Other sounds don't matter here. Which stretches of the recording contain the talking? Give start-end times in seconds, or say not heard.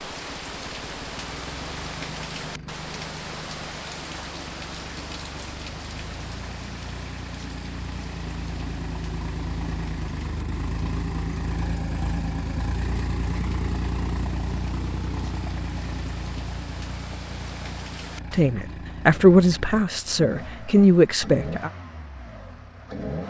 18.3-21.7.